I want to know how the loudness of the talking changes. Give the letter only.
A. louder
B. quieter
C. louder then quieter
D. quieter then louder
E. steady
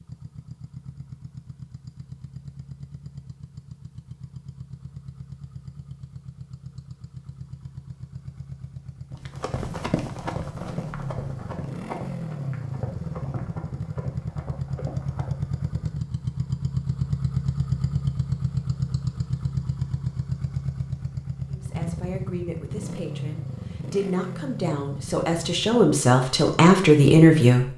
A.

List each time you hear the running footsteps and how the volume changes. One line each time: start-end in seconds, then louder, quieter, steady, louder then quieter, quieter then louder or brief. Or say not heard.
9.1-15.6 quieter.